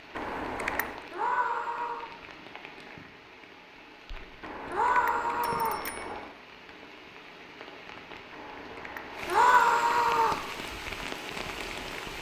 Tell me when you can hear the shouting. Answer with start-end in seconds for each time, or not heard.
1.1-2.1, 4.7-5.8, 9.2-10.4.